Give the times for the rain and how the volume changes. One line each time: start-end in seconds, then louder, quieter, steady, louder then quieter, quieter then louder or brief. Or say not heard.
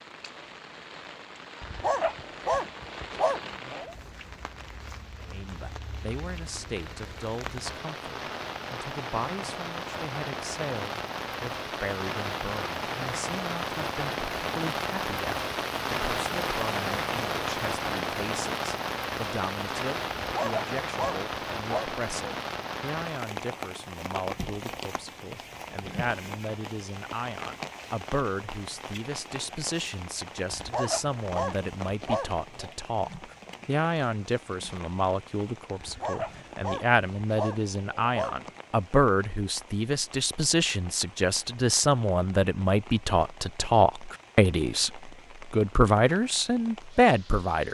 0.0-47.6 louder then quieter.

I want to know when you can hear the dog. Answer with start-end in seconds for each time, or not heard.
1.6-4.0, 20.2-21.9, 30.5-32.8, 35.8-38.5.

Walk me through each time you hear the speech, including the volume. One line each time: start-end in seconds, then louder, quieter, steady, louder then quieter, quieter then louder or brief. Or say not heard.
5.2-47.6 louder.